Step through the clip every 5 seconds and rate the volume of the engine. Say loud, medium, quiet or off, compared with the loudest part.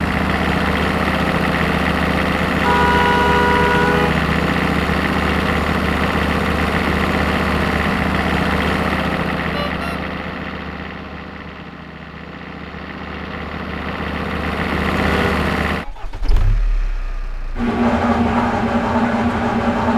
loud, loud, medium, loud.